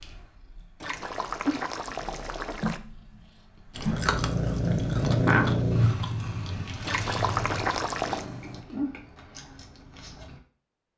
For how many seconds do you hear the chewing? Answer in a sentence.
You can hear the chewing for 7 seconds altogether.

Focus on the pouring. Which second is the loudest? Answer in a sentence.
The volume of the pouring peaks at 8 seconds.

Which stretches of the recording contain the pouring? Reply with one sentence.
You can hear the pouring from 0.8 to 2.8 s and from 6.8 to 8.3 s.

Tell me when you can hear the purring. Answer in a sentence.
The purring can be heard from 0.0 to 8.6 s.